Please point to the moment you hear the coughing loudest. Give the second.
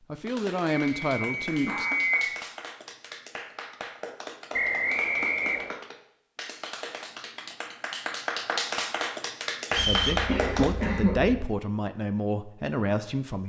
11 s.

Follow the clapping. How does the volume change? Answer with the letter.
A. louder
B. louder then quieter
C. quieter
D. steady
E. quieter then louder
A.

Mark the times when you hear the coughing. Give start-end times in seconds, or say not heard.
1.4-1.9, 9.8-11.5.